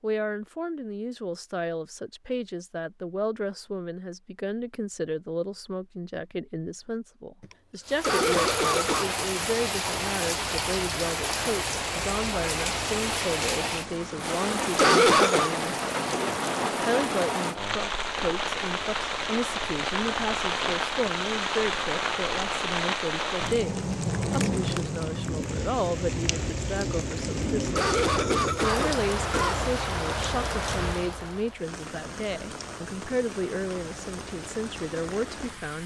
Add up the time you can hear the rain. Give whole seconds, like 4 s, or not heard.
28 s.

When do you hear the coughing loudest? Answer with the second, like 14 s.
15 s.